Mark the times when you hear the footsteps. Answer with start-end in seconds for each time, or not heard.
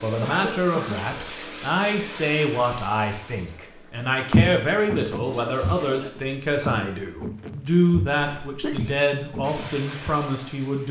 4.3-10.1.